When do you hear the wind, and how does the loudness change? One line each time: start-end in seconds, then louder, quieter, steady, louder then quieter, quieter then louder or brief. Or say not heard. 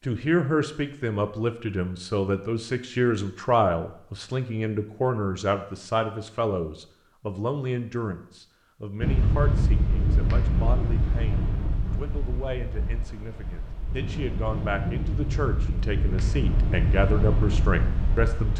9.0-18.5 quieter then louder.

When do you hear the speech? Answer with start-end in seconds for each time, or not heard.
0.0-18.5.